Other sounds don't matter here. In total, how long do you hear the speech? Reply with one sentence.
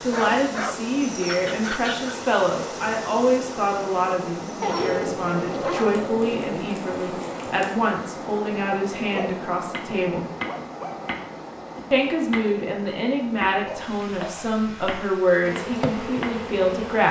You can hear the speech for 15 seconds altogether.